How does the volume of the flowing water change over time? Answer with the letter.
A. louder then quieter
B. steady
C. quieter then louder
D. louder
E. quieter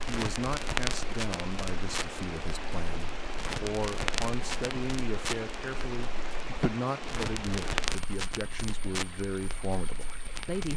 E.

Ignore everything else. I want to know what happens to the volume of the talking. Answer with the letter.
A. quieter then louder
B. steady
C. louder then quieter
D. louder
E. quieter
B.